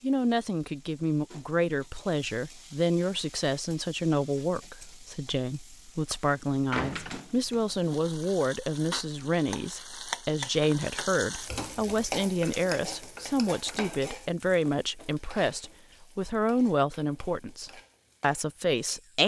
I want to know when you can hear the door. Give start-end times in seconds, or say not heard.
6.7-7.2.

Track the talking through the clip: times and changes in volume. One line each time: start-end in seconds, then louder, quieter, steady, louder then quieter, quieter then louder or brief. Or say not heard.
0.0-19.2 steady.